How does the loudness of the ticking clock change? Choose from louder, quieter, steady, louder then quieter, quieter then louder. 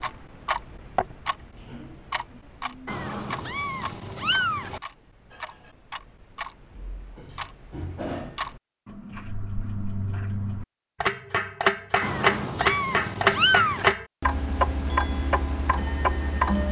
quieter then louder.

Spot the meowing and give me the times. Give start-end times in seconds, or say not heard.
2.9-4.8, 12.0-13.9.